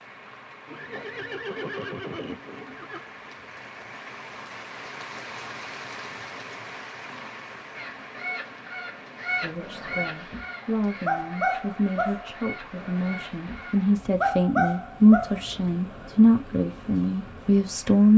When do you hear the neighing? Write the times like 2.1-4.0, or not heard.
0.7-3.1.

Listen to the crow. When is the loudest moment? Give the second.
9 s.